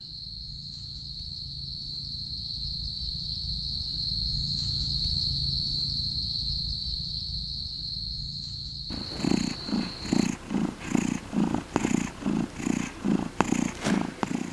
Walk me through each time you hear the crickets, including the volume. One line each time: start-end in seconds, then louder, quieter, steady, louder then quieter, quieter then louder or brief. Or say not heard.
0.0-10.3 louder then quieter.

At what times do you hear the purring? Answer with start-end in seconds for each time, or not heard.
8.9-14.4.